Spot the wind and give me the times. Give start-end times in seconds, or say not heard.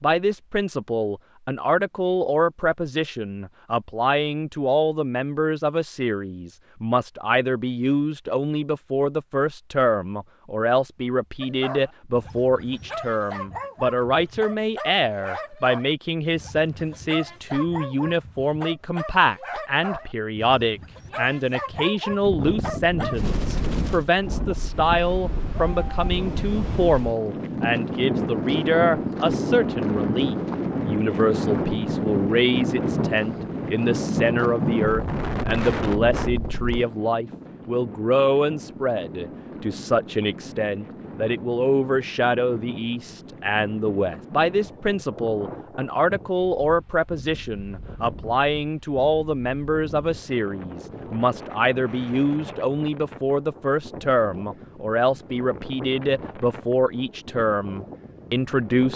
22.2-58.9.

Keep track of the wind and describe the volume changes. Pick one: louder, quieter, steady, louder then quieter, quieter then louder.
quieter.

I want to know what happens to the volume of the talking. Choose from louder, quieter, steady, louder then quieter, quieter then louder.
steady.